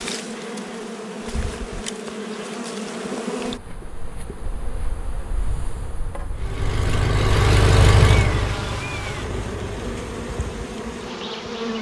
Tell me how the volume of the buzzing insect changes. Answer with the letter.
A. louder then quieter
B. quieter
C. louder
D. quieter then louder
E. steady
D.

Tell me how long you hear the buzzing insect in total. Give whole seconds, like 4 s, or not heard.
12 s.